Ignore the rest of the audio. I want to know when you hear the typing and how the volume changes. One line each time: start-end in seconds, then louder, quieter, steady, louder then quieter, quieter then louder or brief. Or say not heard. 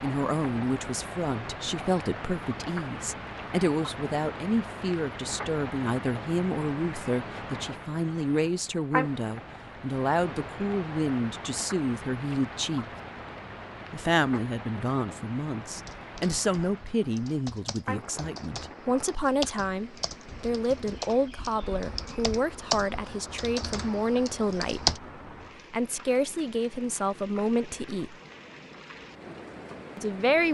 15.7-25.0 louder then quieter.